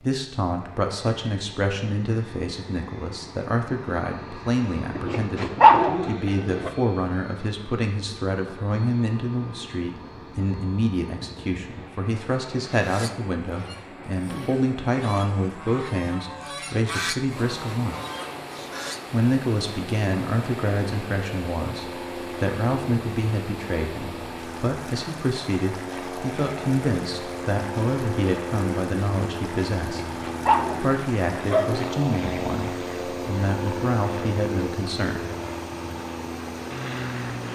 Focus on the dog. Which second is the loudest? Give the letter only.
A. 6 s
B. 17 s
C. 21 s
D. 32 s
A.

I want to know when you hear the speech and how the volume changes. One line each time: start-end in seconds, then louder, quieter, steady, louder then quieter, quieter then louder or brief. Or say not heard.
0.0-17.9 steady
19.1-35.2 steady.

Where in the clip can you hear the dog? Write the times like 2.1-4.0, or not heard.
5.0-6.7, 29.8-31.8.